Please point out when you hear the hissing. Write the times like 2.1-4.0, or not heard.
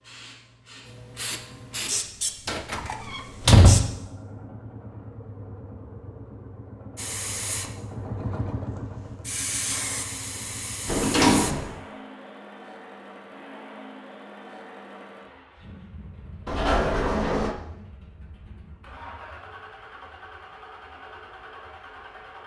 0.0-4.0, 7.0-11.8.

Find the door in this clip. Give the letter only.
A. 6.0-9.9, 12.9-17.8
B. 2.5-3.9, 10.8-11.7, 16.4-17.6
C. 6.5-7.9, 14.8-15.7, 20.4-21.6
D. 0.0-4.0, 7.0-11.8
B.